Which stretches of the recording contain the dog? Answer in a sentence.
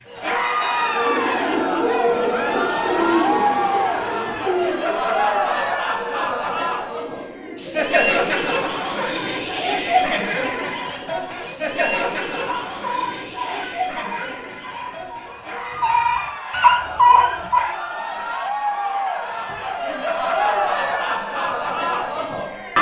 The dog can be heard from 10.7 to 17.8 s.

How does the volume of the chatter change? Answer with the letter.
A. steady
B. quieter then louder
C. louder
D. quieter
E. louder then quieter
B.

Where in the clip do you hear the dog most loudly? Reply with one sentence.
The loudest moment of the dog is at 17 seconds.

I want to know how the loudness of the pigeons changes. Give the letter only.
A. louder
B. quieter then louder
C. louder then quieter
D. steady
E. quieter
E.